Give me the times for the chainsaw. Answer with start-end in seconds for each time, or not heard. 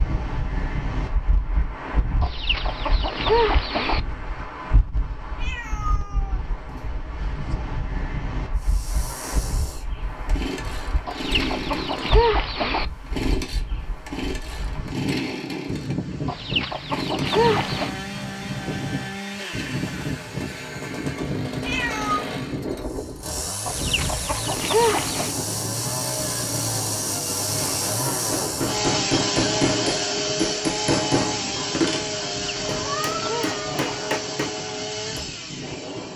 8.6-36.1.